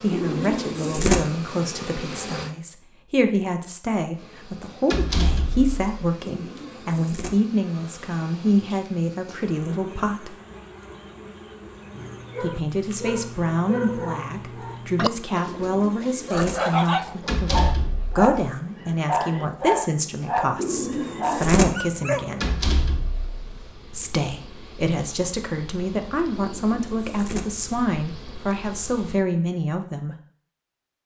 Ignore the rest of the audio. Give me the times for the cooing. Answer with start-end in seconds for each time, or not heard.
0.1-1.2, 6.3-7.3, 15.4-16.6, 20.6-21.6, 26.4-27.4.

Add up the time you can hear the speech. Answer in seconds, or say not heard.
27 s.